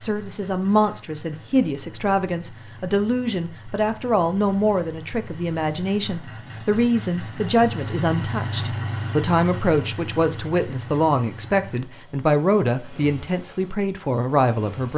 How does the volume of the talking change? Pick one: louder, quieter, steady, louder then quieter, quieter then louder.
steady.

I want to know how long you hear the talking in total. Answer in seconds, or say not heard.
15 s.